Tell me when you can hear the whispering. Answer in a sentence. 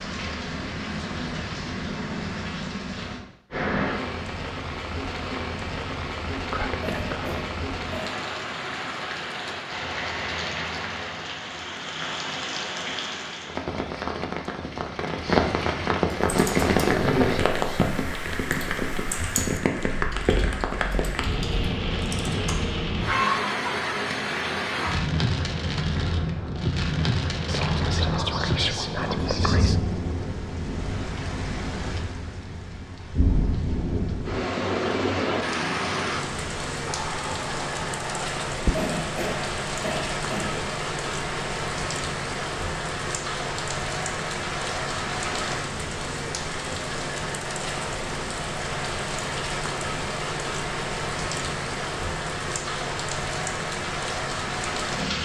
The whispering can be heard from 6.3 to 7.3 s, from 27.4 to 29.8 s and from 36.9 to 38.9 s.